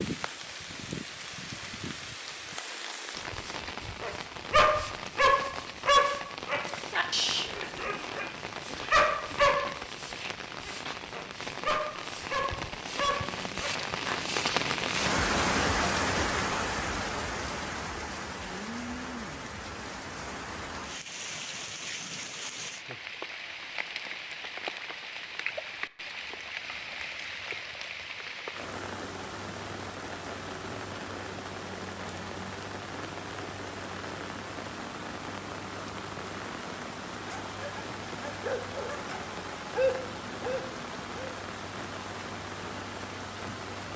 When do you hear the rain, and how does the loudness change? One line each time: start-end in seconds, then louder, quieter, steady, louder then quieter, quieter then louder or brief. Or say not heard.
0.0-43.9 louder then quieter.